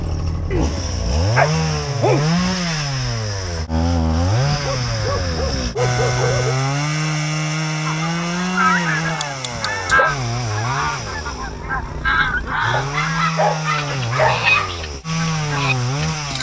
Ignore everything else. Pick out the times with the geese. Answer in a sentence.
The geese can be heard from 7.8 to 16.3 s.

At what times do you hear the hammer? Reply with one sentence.
The hammer can't be heard in this clip.